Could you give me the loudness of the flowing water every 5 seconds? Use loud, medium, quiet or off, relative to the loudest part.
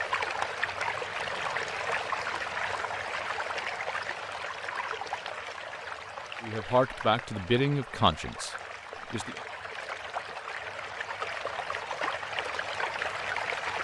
loud, medium, loud.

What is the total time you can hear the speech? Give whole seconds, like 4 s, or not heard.
3 s.